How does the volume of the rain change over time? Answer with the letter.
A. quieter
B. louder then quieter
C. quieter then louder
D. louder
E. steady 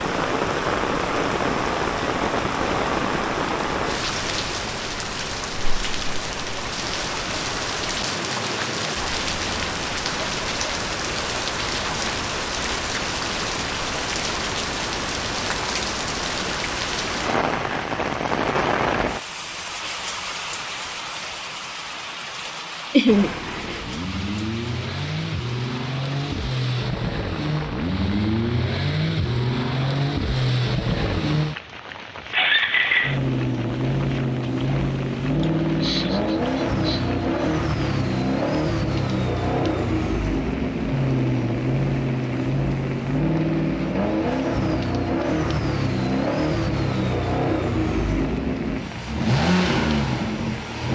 A.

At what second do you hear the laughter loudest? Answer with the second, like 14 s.
23 s.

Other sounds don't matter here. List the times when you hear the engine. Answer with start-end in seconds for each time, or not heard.
23.1-50.9.